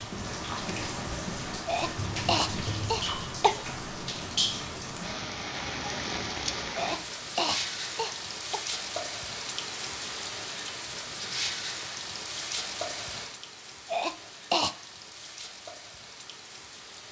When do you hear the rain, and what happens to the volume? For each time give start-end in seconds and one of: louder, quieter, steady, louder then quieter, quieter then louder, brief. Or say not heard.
0.0-17.0 quieter.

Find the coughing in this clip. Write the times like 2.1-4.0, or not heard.
1.6-3.6, 6.8-8.6, 13.8-14.8.